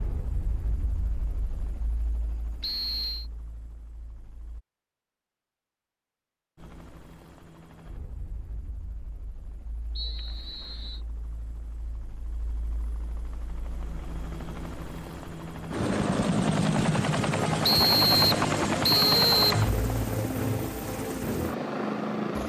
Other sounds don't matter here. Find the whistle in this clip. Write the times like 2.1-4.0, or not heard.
2.6-3.2, 9.9-11.0, 17.6-19.5.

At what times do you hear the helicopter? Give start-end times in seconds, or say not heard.
0.0-4.6, 6.5-22.4.